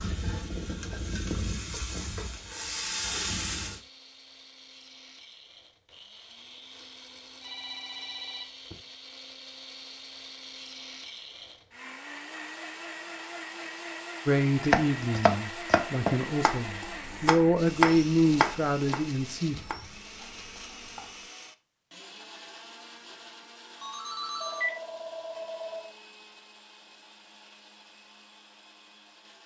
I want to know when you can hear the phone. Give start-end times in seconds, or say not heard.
7.4-8.8, 23.8-25.9.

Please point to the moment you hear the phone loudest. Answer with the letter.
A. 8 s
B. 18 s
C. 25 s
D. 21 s
C.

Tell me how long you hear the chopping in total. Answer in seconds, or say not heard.
7 s.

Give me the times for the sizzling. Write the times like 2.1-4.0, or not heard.
0.0-3.8.